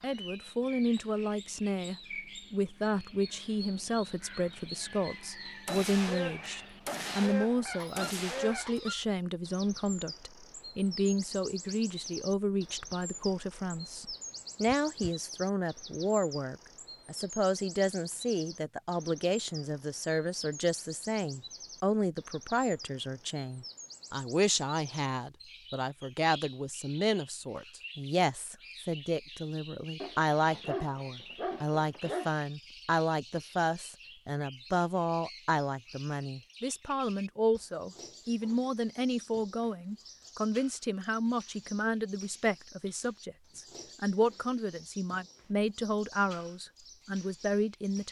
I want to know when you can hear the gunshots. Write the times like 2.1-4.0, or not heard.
5.7-8.8.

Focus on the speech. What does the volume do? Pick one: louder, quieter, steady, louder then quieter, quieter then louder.
steady.